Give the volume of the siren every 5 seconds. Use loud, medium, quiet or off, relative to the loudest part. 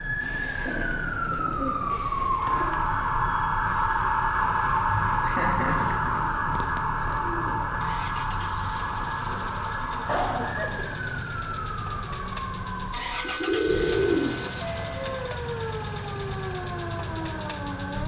loud, loud, medium, medium.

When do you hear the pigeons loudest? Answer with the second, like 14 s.
14 s.